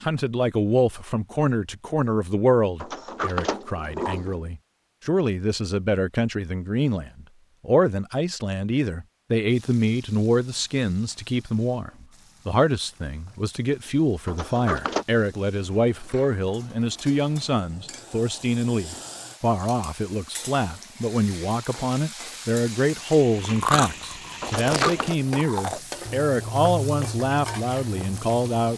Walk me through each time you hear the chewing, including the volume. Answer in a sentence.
The chewing can be heard from 23.4 to 28.7 s, getting quieter.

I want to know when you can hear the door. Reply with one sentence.
You can hear the door from 2.8 to 4.4 s, from 14.2 to 15.1 s and from 24.4 to 25.1 s.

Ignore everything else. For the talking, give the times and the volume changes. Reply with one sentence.
The talking can be heard from 0.0 to 28.7 s, at a steady volume.